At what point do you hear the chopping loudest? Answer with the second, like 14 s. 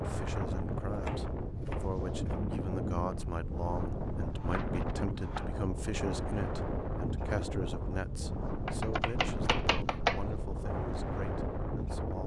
10 s.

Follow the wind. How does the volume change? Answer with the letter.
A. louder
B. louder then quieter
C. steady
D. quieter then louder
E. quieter
C.